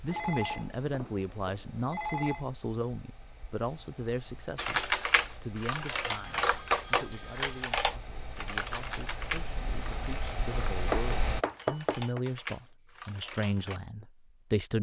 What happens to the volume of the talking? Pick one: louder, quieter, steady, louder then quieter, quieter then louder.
quieter then louder.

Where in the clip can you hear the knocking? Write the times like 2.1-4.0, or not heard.
10.9-12.2.